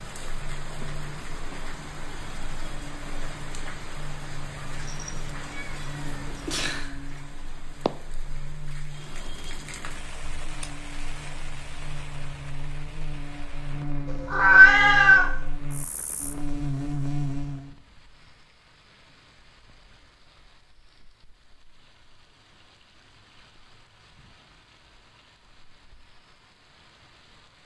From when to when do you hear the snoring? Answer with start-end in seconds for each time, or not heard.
not heard.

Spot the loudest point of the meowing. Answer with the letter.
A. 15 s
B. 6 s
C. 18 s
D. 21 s
A.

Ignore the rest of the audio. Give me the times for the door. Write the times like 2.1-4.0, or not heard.
not heard.